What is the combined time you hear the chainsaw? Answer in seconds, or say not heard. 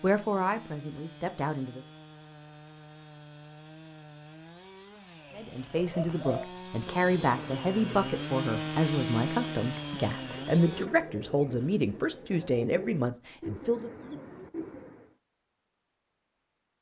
11 s.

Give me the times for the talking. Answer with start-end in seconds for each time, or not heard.
0.0-1.8, 5.3-13.9.